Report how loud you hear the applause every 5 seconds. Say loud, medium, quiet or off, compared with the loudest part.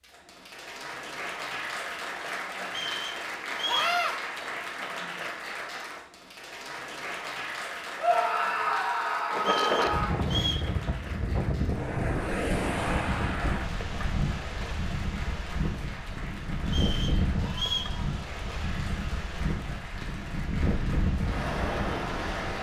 loud, loud, medium, medium, medium.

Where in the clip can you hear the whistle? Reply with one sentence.
The whistle can be heard from 2.6 to 4.0 s, from 9.3 to 10.7 s and from 16.6 to 17.9 s.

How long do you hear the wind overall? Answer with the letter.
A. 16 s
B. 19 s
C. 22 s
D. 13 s
D.